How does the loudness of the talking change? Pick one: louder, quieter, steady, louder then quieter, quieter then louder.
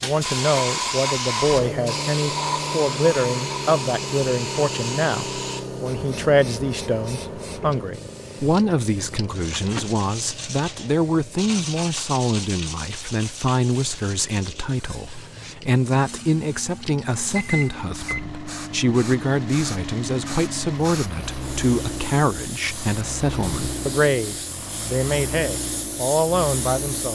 steady.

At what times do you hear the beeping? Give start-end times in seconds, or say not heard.
17.4-18.2.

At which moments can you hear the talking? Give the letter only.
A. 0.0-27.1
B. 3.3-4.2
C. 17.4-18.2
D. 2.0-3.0
A.